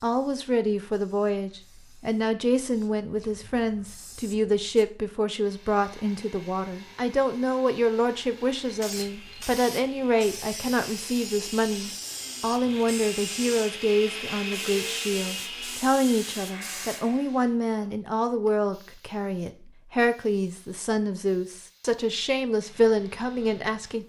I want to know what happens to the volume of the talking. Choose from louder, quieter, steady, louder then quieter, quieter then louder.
steady.